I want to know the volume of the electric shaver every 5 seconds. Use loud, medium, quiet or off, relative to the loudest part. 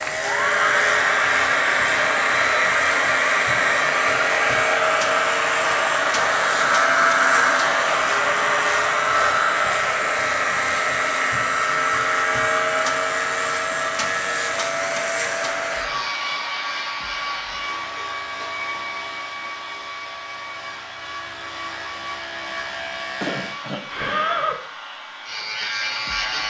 loud, loud, loud, medium, medium, loud.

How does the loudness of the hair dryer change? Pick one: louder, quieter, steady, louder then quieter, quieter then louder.
quieter.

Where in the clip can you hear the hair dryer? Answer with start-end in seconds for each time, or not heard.
0.0-26.4.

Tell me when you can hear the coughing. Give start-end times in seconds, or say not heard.
23.2-24.2.